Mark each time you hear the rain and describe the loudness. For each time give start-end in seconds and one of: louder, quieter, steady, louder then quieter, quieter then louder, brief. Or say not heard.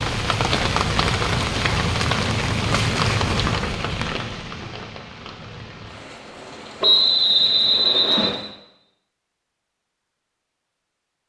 0.0-8.6 quieter.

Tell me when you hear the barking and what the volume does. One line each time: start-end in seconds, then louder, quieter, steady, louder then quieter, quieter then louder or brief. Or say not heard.
not heard.